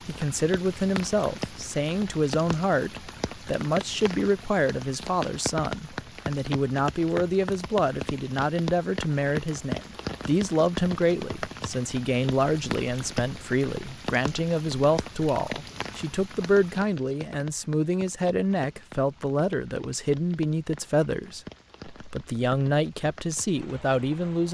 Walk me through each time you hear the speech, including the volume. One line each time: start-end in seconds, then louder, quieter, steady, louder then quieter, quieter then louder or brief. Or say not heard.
0.1-24.4 steady.